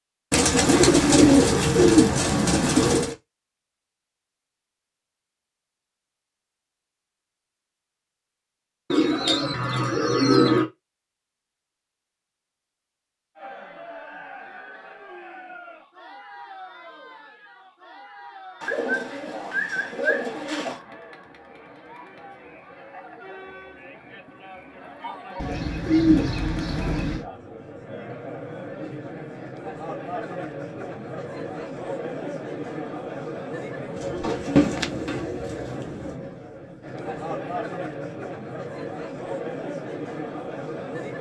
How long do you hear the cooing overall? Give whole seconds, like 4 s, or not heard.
11 s.